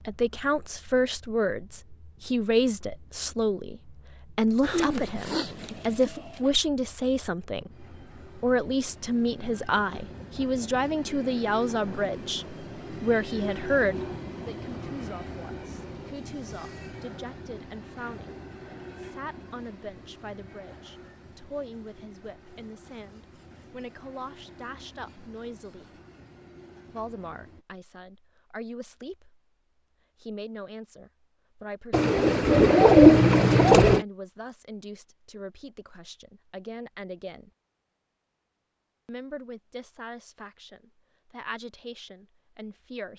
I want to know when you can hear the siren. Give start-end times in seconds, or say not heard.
not heard.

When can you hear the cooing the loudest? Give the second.
33 s.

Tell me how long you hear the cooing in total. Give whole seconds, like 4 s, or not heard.
4 s.